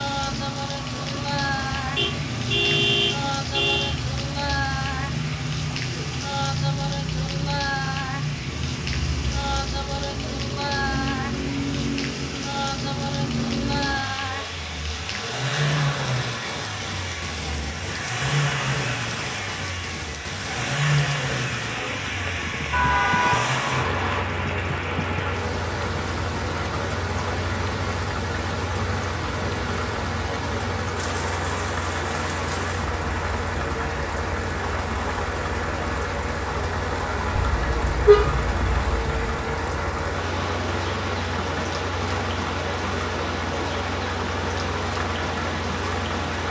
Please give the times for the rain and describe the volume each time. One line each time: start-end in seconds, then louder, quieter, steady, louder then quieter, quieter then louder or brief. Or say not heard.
0.0-46.4 steady.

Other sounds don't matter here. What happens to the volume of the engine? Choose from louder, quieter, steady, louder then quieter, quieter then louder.
steady.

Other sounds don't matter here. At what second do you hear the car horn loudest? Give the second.
38 s.